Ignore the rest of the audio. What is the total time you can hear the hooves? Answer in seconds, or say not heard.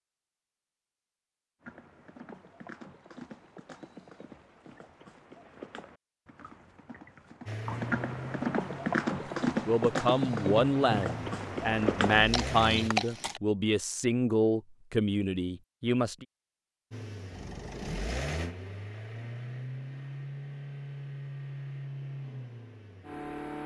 12 s.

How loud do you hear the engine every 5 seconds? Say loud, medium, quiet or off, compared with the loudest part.
off, loud, loud, loud, loud.